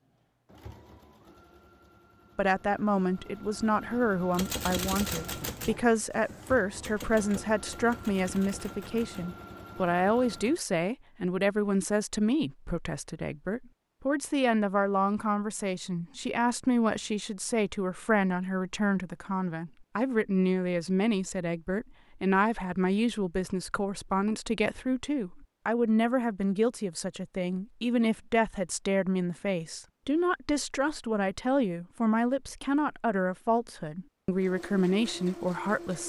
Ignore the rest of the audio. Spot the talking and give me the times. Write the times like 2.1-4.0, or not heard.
2.4-36.0.